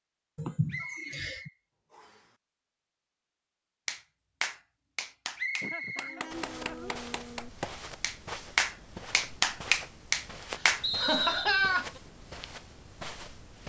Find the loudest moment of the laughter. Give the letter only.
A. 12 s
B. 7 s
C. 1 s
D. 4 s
A.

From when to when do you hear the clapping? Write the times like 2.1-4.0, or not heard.
3.9-10.8.